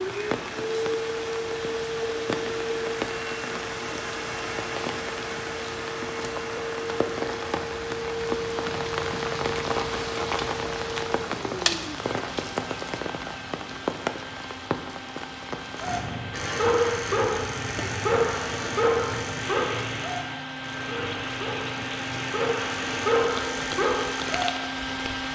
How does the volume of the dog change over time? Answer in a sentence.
The loudness of the dog goes down, then up.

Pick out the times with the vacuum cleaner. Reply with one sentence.
The vacuum cleaner can be heard from 0.0 to 25.3 s.